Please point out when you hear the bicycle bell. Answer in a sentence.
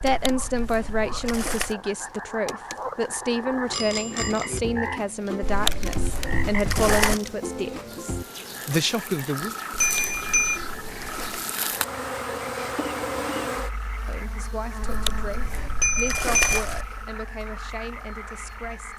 You can hear the bicycle bell from 3.7 to 4.6 s, from 9.8 to 10.6 s and from 15.8 to 16.6 s.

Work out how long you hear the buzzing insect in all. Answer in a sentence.
You can hear the buzzing insect for 19 seconds altogether.